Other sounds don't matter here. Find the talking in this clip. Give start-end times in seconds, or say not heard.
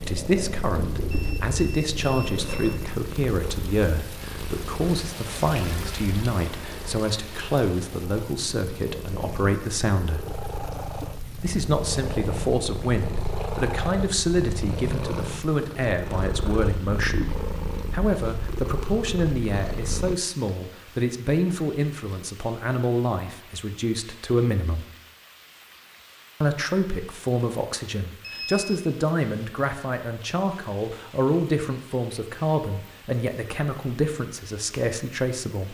0.0-10.3, 11.3-17.2, 17.9-24.9, 26.4-35.6.